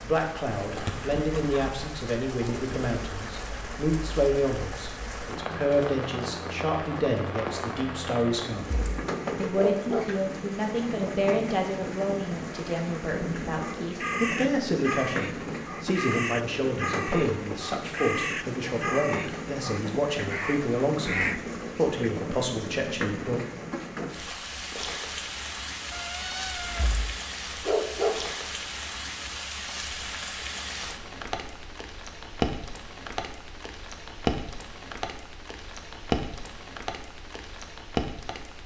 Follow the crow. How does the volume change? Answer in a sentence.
The loudness of the crow stays about the same.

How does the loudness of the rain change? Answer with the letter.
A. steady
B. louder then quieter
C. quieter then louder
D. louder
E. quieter
A.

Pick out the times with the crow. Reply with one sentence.
The crow can be heard from 13.6 to 22.1 s.